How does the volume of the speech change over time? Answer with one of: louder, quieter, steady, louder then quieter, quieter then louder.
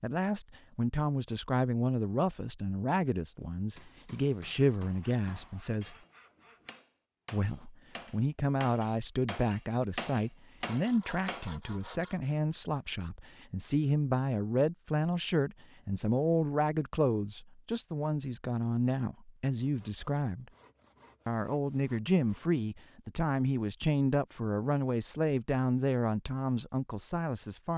steady.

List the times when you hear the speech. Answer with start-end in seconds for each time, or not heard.
0.0-6.0, 7.3-20.4, 21.2-27.7.